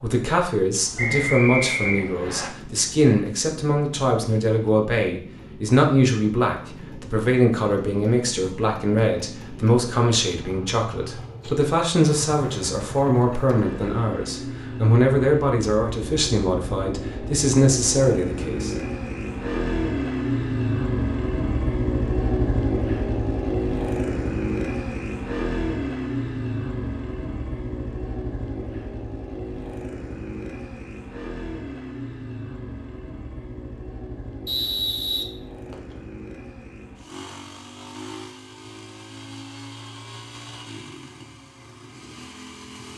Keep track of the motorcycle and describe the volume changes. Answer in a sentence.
The volume of the motorcycle goes up, then down.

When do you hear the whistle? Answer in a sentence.
You can hear the whistle from 0.9 to 2.5 s and from 34.5 to 36.0 s.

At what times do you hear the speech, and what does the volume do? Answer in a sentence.
You can hear the speech from 0.0 to 18.8 s, at a steady volume.